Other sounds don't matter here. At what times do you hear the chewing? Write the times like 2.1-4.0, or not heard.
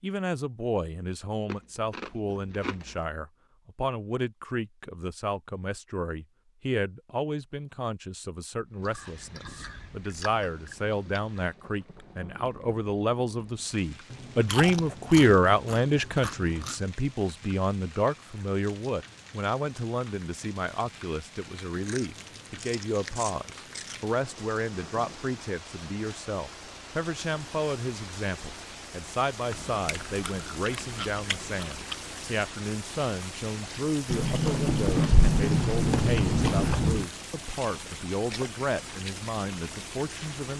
1.4-3.0, 8.8-11.6, 14.1-16.8, 21.7-24.1, 29.5-31.9, 34.0-37.0.